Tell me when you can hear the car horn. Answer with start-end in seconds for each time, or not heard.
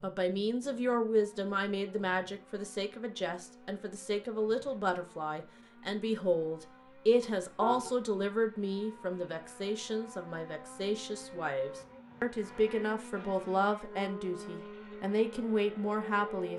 7.2-7.9.